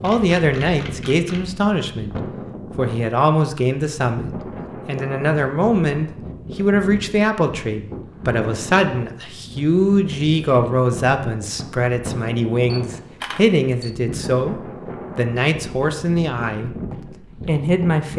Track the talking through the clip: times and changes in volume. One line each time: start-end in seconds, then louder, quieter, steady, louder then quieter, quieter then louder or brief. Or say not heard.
0.0-2.1 brief
2.8-18.1 steady.